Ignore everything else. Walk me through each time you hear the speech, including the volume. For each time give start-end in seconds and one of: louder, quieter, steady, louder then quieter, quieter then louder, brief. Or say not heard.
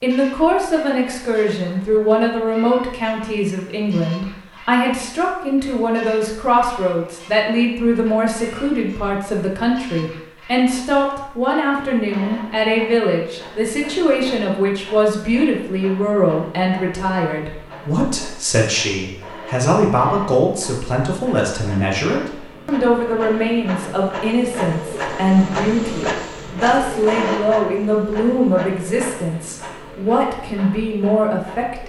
0.0-31.8 steady.